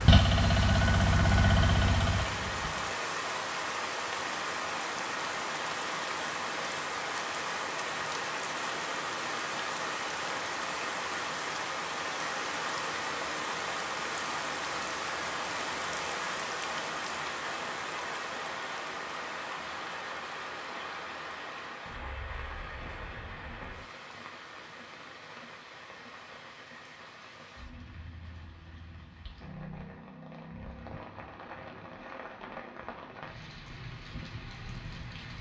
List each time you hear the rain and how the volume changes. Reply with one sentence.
You can hear the rain from 0.0 to 35.3 s, getting quieter.